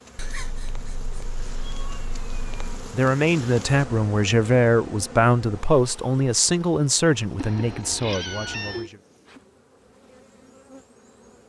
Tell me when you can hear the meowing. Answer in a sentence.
You can hear the meowing from 0.1 to 2.9 s and from 7.3 to 8.9 s.